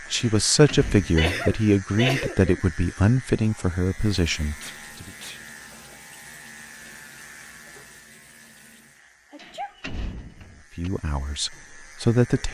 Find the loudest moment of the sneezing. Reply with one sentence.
The volume of the sneezing peaks at 2 seconds.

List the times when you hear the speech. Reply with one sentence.
You can hear the speech from 0.1 to 5.1 s and from 10.8 to 12.4 s.